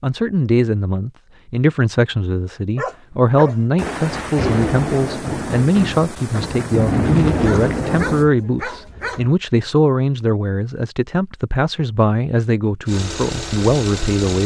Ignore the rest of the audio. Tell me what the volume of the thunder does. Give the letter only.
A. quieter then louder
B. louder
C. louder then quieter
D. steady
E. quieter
A.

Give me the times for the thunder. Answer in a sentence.
The thunder can be heard from 3.8 to 8.2 s.